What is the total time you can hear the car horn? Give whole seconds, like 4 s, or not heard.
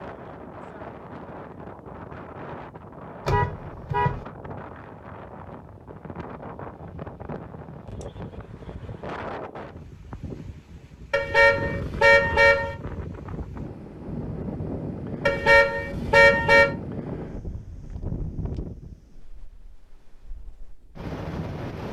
4 s.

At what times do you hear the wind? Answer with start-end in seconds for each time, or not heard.
0.0-21.8.